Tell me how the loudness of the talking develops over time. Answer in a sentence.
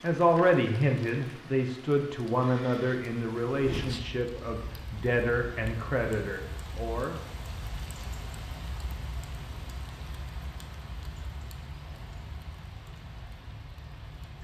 The loudness of the talking goes down.